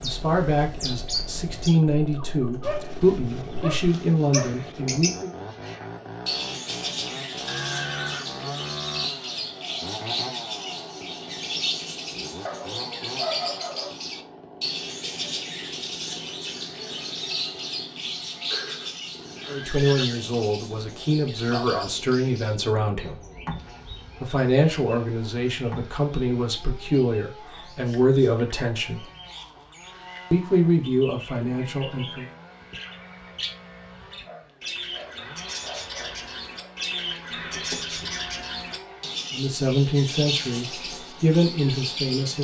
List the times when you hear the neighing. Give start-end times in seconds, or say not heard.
7.5-8.3, 18.5-20.1, 37.3-38.2.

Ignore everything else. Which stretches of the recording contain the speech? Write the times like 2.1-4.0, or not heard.
0.0-5.3, 19.4-23.1, 24.2-29.1, 30.3-32.2, 39.3-42.3.